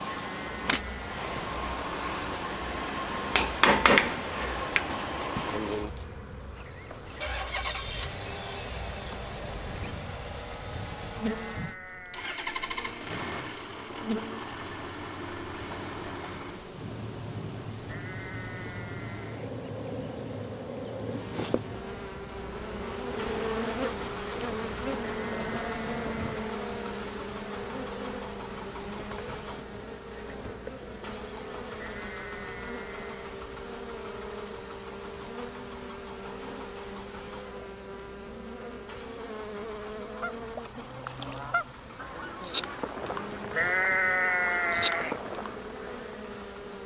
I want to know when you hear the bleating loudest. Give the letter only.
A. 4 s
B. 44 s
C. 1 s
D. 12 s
B.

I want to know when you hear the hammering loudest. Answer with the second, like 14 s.
4 s.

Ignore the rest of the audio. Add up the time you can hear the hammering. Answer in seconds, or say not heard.
2 s.